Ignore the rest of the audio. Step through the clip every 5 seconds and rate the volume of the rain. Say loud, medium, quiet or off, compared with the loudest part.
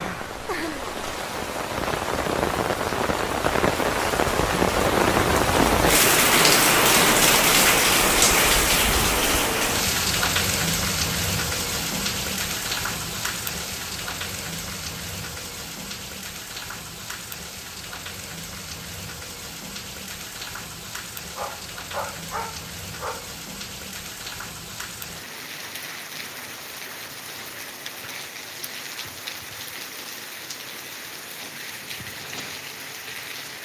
medium, loud, medium, quiet, quiet, quiet, quiet.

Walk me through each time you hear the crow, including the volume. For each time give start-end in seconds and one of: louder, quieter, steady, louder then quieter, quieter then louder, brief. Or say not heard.
not heard.